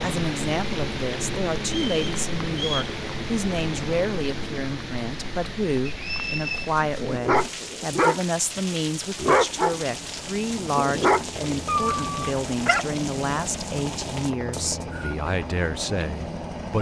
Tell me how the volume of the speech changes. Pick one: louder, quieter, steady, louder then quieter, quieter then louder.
steady.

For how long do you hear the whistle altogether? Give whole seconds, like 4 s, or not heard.
3 s.